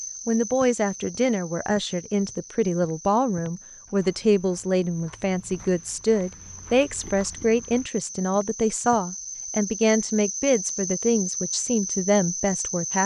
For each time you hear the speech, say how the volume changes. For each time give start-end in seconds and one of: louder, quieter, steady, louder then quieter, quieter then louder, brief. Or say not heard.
0.2-13.0 steady.